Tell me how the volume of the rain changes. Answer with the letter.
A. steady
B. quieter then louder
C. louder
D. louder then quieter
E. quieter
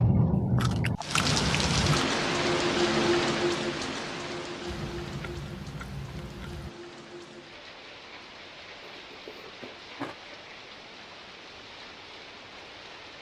E.